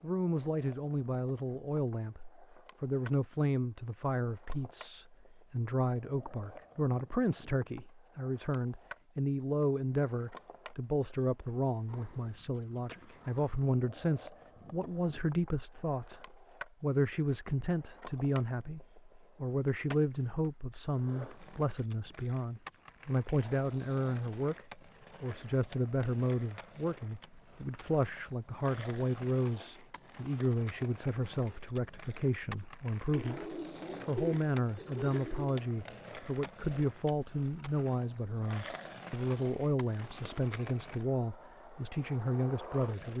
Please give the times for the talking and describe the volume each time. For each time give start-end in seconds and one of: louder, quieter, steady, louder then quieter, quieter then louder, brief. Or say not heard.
0.0-43.1 steady.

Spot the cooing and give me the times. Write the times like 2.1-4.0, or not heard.
33.1-35.6.